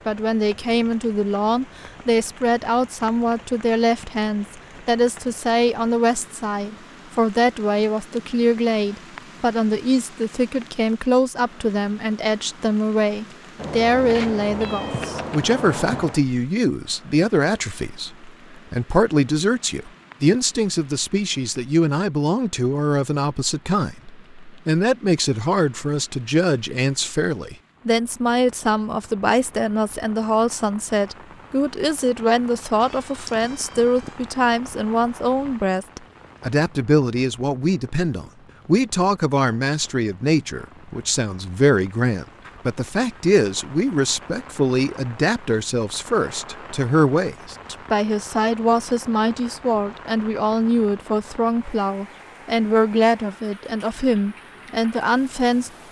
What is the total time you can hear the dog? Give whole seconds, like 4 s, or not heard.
not heard.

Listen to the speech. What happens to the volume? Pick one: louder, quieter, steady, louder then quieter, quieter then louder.
steady.